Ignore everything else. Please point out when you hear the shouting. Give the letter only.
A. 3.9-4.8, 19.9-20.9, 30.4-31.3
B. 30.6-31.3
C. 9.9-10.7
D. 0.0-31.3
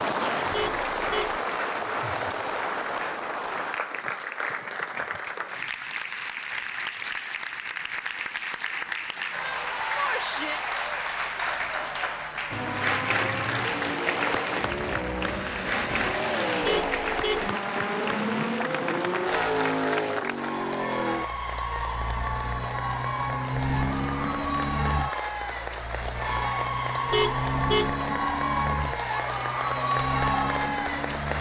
C.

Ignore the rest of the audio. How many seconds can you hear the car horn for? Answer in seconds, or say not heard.
3 s.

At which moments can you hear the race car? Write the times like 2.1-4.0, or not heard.
12.5-31.3.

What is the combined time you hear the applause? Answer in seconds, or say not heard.
31 s.